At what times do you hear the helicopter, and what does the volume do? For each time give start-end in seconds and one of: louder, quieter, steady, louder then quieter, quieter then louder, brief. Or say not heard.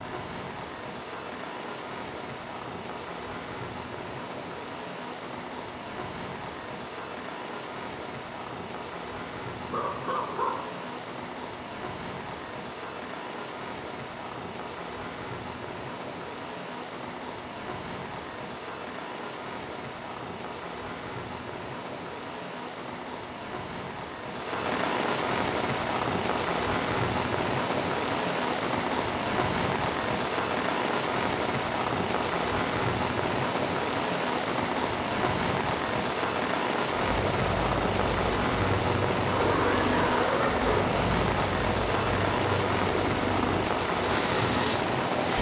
37.0-45.3 steady.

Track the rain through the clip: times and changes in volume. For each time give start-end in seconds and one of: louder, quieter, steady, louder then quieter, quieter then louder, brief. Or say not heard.
0.0-45.3 louder.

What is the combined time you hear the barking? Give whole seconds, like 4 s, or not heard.
3 s.